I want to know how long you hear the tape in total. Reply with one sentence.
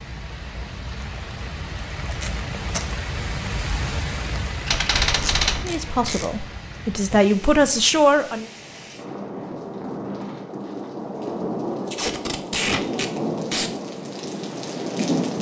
You can hear the tape for 4 seconds altogether.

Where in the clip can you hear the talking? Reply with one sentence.
The talking can be heard from 5.6 to 8.4 s.